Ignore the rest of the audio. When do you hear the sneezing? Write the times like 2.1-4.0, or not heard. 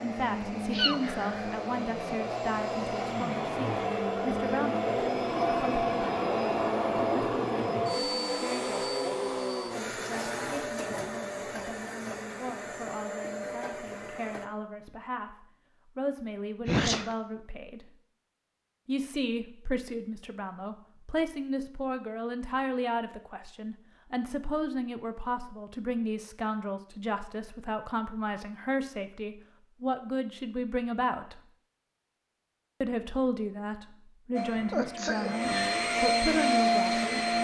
0.7-1.5, 16.6-17.1, 34.7-35.4.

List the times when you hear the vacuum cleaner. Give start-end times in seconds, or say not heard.
0.0-14.5, 34.4-37.3.